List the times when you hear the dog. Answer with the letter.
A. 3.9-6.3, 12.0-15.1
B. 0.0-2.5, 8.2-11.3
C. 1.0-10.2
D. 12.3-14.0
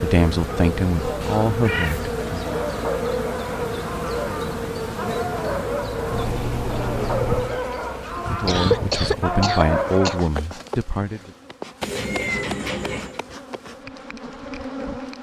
C.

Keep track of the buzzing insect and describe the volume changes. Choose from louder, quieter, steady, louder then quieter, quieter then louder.
quieter.